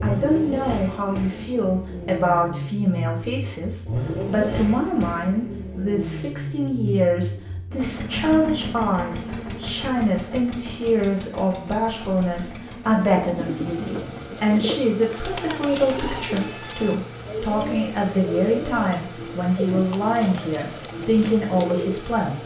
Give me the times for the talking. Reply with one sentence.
You can hear the talking from 0.0 to 22.4 s.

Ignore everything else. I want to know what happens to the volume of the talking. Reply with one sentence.
The loudness of the talking stays about the same.